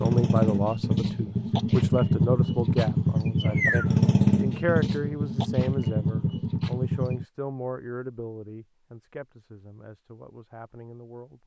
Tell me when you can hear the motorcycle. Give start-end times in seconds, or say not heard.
0.0-7.2.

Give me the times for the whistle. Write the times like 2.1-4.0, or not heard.
not heard.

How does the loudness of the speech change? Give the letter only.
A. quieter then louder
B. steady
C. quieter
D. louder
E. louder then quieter
C.